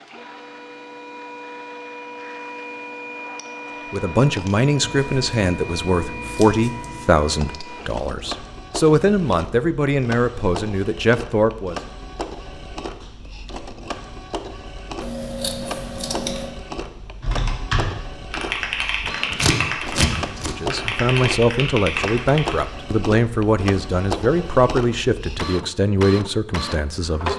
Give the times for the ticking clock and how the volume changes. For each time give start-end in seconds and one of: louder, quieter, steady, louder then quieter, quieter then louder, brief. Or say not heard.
not heard.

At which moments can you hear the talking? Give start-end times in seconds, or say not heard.
3.9-11.8, 20.4-27.3.